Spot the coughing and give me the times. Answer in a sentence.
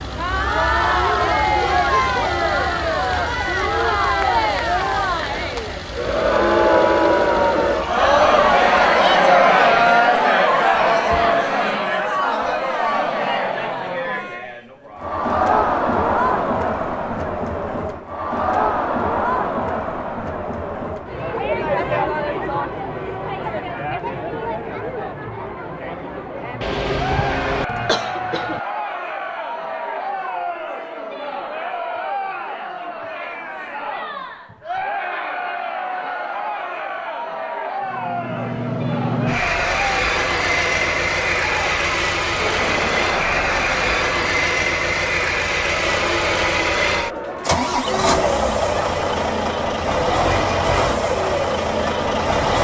The coughing can be heard from 26.6 to 28.6 s.